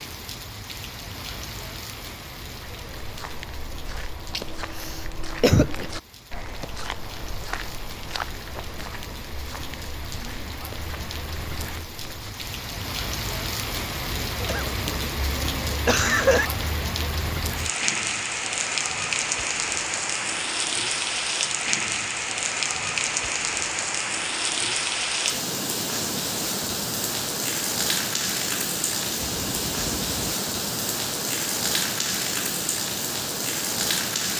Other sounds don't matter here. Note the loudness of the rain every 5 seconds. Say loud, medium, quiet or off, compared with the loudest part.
quiet, quiet, medium, loud, loud, loud, loud.